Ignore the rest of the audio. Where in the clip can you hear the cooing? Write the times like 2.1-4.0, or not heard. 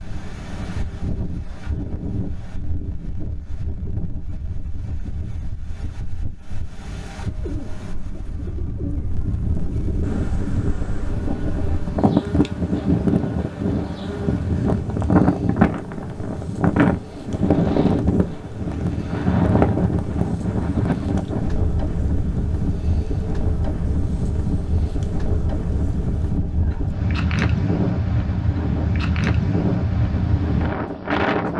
7.2-10.0.